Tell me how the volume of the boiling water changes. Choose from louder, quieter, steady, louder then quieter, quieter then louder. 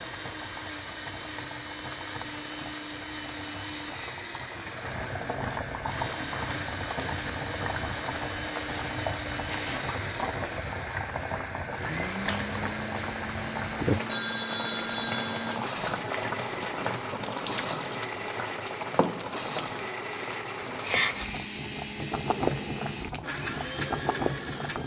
louder.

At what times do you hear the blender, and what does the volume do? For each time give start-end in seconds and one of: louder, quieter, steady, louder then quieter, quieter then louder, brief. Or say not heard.
0.0-24.8 steady.